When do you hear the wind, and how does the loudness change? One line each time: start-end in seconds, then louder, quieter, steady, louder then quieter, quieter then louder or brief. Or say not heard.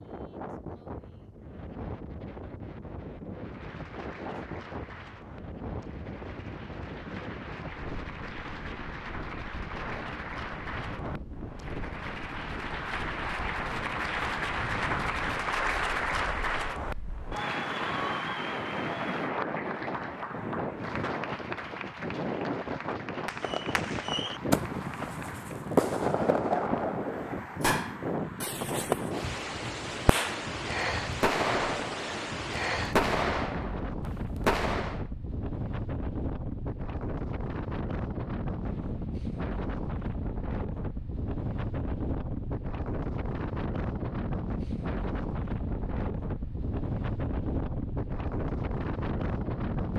0.0-49.9 louder.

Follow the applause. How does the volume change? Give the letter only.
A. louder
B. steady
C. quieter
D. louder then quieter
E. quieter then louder
D.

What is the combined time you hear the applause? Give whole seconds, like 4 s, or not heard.
22 s.